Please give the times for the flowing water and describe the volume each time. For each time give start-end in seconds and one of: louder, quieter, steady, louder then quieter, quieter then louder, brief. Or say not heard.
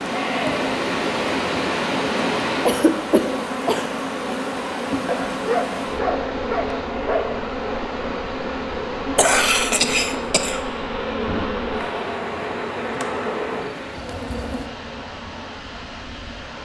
0.0-16.6 quieter.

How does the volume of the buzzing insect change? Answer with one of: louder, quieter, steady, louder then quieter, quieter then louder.
steady.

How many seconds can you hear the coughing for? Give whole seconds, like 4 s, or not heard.
3 s.